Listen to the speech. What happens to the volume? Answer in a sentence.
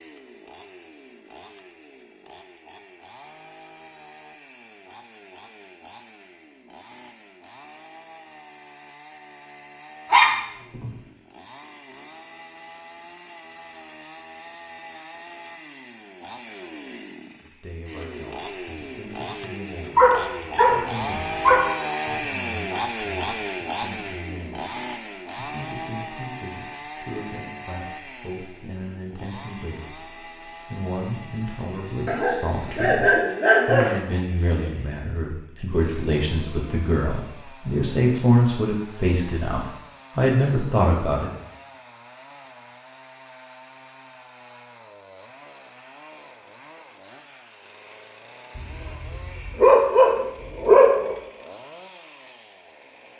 The volume of the speech goes up.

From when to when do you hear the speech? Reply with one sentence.
The speech can be heard from 17.4 to 21.4 s and from 22.1 to 41.3 s.